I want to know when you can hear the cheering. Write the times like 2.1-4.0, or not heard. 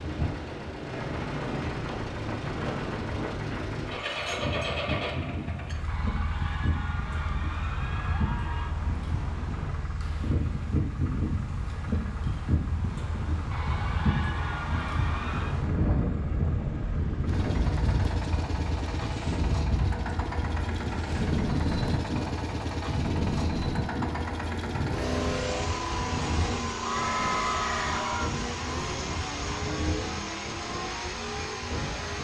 5.8-8.8, 13.5-15.6, 26.8-28.4.